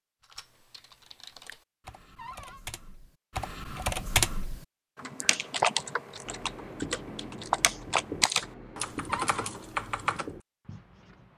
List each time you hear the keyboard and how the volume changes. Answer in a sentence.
The keyboard can be heard from 0.2 to 10.2 s, getting louder.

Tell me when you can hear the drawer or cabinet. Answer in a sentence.
You can hear the drawer or cabinet from 2.1 to 2.6 s and from 9.1 to 9.5 s.